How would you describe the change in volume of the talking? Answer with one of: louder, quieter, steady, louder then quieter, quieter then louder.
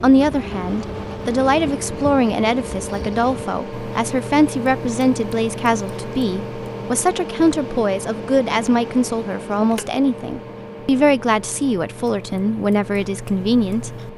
steady.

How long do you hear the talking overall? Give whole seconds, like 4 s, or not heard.
14 s.